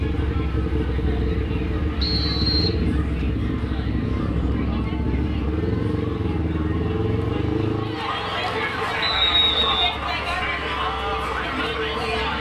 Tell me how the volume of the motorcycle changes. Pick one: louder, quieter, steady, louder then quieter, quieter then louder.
quieter.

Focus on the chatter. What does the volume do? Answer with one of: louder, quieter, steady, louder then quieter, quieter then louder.
louder.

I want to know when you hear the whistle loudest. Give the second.
9 s.